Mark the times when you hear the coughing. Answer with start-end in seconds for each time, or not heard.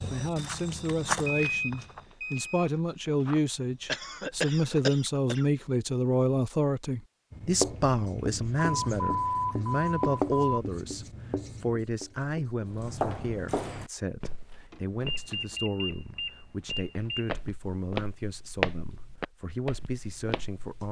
3.9-5.5.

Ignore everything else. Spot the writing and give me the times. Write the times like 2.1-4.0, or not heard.
7.3-12.8.